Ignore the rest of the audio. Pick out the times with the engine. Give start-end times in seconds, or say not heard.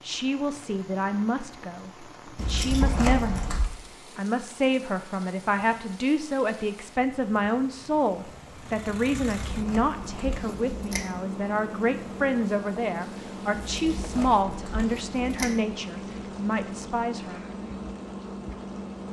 8.5-19.0.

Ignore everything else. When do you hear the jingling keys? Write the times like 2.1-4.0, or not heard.
2.4-3.6, 9.3-11.0, 13.7-15.5.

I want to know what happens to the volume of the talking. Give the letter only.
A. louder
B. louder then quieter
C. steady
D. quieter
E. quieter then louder
C.